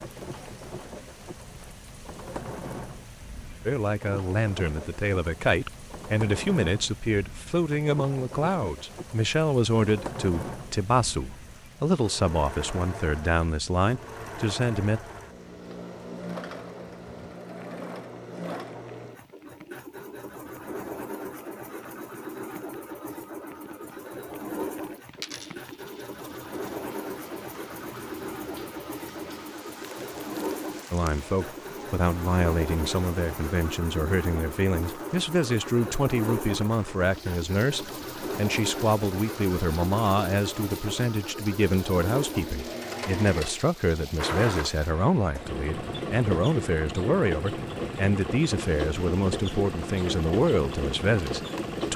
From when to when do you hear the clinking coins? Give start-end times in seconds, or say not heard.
25.1-26.8.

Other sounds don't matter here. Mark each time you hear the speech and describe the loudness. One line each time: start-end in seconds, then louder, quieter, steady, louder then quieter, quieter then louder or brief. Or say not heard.
3.6-15.0 steady
30.9-51.9 steady.